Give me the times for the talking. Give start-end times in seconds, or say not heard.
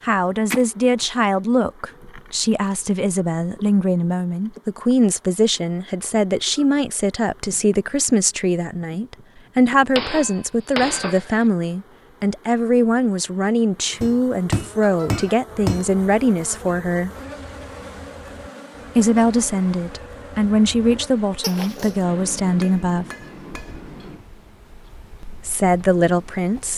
0.0-17.1, 18.9-23.1, 25.2-26.7.